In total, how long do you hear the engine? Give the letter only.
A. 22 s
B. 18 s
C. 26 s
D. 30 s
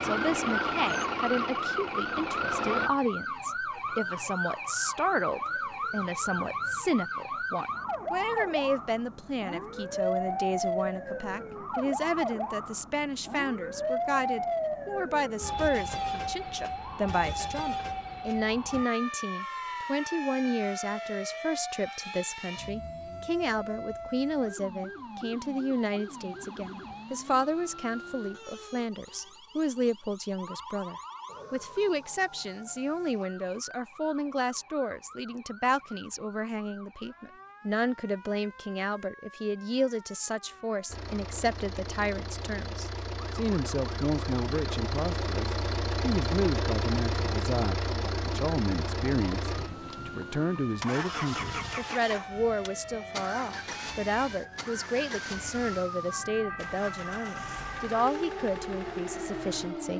A.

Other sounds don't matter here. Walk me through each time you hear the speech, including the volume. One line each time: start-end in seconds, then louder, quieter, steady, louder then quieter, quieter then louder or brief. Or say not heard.
0.0-59.9 steady.